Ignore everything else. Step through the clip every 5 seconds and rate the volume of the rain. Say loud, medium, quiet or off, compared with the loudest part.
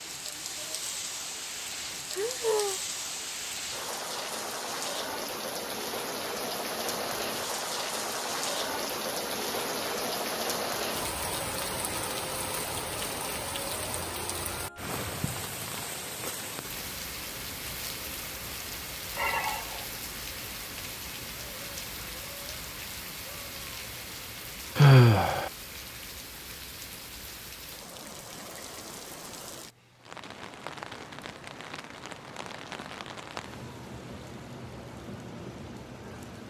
loud, loud, loud, medium, medium, medium, medium, medium.